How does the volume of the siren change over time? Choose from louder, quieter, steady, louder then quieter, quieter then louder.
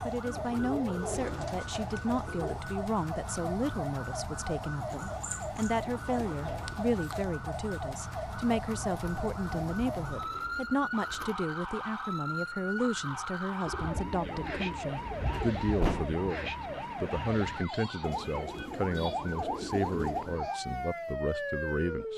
steady.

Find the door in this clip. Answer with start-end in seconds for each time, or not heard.
15.3-16.1.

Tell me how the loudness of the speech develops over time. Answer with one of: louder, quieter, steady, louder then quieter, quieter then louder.
steady.